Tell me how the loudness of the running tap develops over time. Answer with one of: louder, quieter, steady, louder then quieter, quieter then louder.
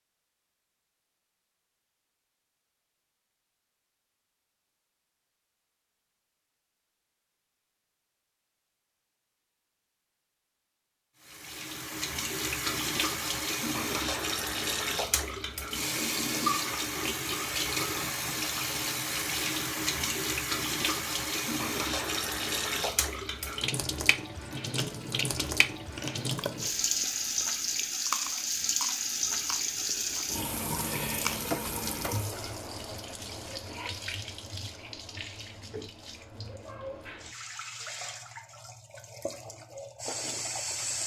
quieter.